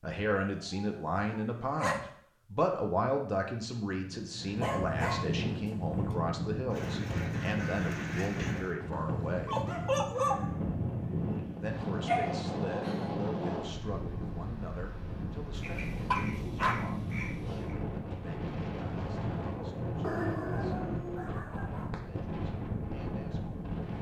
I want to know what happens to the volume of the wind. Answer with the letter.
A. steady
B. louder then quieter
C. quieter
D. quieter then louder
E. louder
A.